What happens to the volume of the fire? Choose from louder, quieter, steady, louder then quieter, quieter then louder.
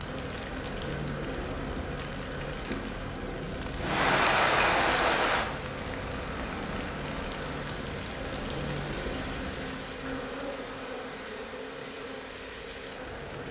quieter.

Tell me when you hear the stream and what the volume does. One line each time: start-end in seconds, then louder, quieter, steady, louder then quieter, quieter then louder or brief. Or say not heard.
3.8-13.4 quieter.